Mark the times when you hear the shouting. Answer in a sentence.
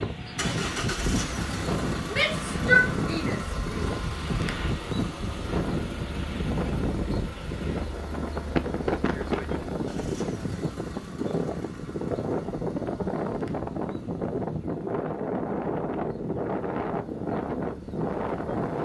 The shouting can be heard from 2.0 to 3.9 s.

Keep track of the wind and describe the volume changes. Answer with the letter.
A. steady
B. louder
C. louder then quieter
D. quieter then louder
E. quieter
A.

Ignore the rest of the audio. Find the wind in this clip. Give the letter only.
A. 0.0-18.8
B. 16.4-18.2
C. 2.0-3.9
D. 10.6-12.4
A.